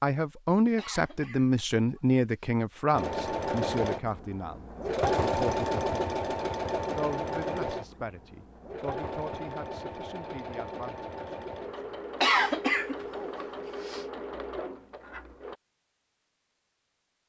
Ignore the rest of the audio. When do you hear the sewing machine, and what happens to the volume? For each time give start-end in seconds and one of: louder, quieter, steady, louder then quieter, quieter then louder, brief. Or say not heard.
2.9-15.6 quieter.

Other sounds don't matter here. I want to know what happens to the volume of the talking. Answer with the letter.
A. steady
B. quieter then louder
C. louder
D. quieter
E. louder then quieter
D.